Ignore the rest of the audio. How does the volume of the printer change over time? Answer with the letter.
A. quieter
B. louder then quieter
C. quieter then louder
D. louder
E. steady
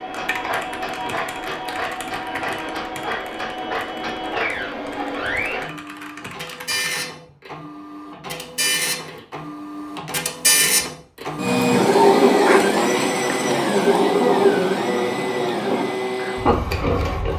D.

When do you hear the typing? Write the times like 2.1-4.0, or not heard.
0.1-7.0.